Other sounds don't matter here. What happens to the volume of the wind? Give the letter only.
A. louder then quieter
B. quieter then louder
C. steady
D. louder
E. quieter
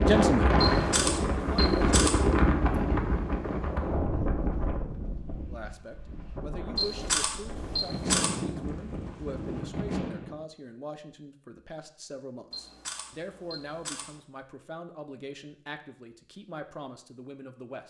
B.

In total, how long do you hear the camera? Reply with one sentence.
The camera can be heard for 5 seconds in total.